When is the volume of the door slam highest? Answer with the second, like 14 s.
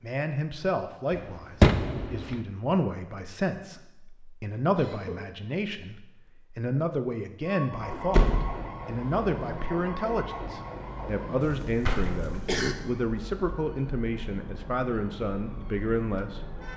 2 s.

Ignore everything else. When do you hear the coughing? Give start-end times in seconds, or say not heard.
4.7-5.5, 11.4-12.8.